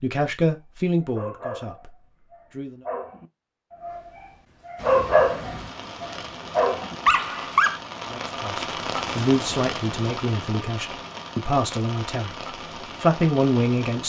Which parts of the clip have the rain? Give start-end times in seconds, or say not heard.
4.8-14.0.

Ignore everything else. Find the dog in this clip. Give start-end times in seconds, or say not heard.
0.9-4.0, 4.7-7.8.